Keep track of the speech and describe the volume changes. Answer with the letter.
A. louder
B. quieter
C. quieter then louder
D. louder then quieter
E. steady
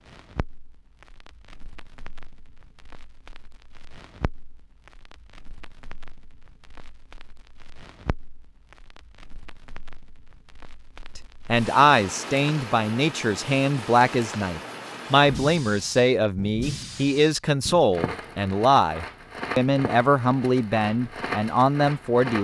E.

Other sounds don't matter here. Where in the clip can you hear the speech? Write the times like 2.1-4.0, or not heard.
11.4-22.3.